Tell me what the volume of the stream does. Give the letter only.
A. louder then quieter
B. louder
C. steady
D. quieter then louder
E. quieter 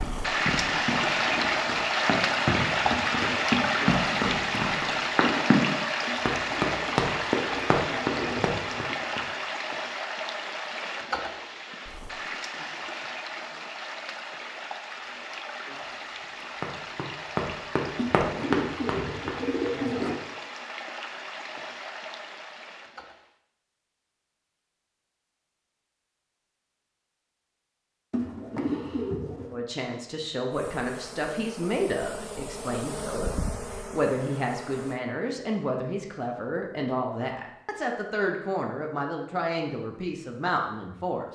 E.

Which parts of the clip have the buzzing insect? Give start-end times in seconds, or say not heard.
30.5-35.0.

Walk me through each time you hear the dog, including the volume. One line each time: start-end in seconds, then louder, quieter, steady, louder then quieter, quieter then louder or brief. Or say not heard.
not heard.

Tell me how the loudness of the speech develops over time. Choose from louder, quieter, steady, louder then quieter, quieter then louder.
steady.